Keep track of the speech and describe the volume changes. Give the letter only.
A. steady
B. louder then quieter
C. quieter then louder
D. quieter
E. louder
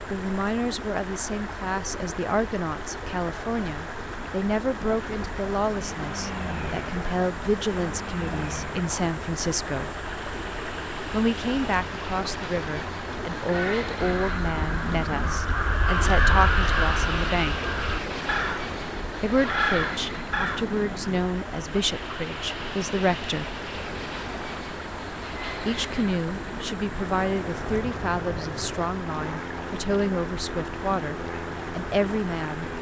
A.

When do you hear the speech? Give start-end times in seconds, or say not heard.
0.1-9.9, 11.1-17.7, 19.1-23.6, 25.6-32.7.